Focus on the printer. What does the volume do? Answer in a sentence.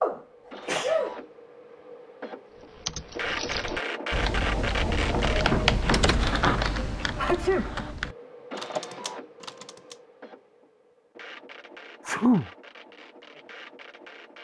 The volume of the printer goes up, then down.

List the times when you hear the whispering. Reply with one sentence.
You can't hear the whispering here.